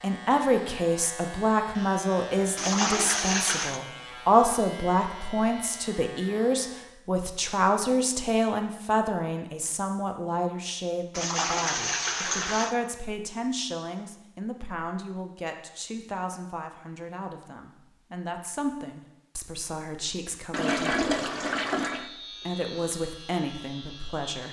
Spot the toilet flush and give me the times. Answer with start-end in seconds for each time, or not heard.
2.5-3.8, 11.2-12.8, 20.5-22.1.